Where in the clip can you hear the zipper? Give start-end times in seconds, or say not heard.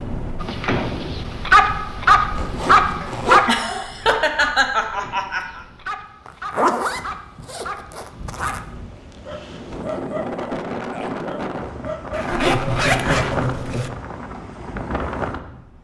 2.4-3.5, 6.2-8.6, 12.1-13.9.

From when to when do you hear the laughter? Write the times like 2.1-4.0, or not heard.
3.0-5.6, 12.2-13.9.